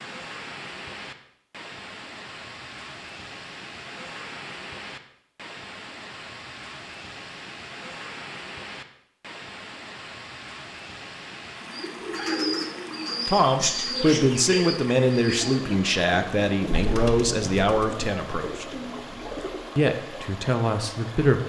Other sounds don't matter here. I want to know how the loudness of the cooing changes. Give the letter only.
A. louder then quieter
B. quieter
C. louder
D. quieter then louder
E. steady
B.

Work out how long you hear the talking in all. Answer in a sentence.
The talking can be heard for 7 seconds in total.